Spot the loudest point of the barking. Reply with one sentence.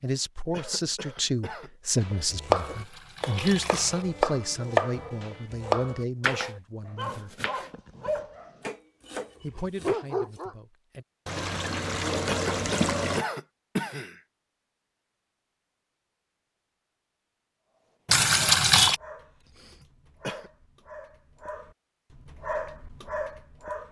The loudest moment of the barking is at 10 seconds.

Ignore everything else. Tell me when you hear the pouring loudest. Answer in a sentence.
The loudest moment of the pouring is at 19 seconds.